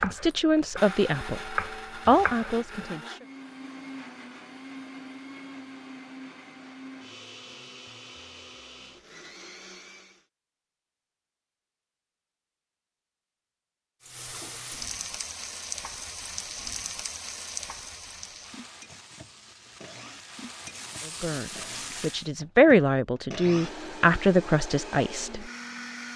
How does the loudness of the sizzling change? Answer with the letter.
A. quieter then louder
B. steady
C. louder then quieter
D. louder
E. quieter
A.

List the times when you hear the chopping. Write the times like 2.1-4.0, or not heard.
0.0-2.5.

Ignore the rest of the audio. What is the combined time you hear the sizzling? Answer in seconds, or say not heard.
8 s.